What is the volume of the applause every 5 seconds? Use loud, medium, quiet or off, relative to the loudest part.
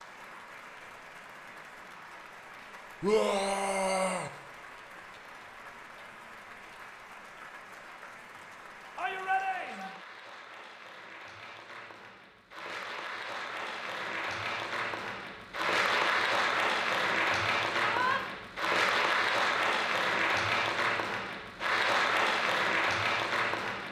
quiet, quiet, medium, loud, loud.